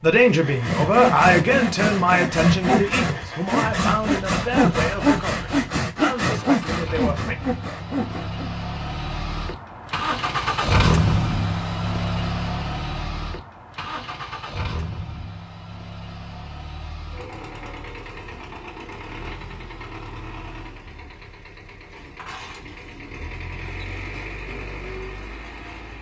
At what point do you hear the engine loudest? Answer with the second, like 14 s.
11 s.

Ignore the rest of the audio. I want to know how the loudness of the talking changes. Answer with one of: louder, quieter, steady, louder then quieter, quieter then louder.
quieter.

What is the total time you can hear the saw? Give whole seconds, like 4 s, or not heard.
8 s.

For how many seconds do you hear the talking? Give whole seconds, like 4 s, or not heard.
7 s.